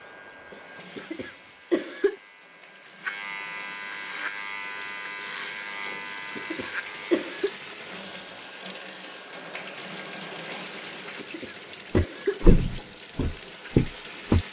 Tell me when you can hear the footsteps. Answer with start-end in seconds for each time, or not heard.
11.9-14.4.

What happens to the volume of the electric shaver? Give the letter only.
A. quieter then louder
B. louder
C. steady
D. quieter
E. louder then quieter
B.